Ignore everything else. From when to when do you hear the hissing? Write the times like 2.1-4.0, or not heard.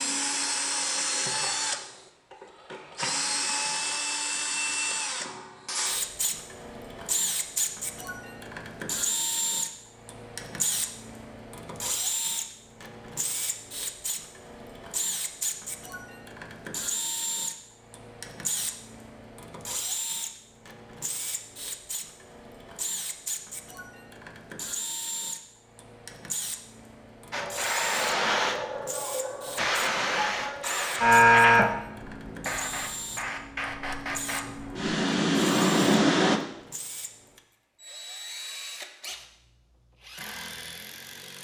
27.3-36.4.